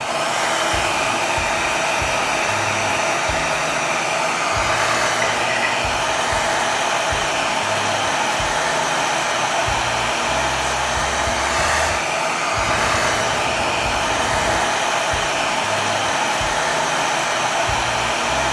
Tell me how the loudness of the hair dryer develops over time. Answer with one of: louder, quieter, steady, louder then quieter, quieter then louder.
steady.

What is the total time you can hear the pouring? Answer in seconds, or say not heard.
3 s.